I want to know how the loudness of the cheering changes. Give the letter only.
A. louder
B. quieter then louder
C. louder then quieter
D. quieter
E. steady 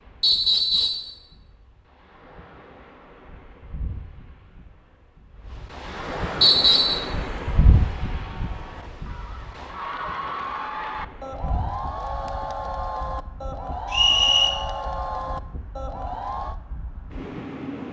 A.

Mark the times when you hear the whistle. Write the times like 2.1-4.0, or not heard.
0.2-1.1, 6.4-7.0, 13.9-14.5.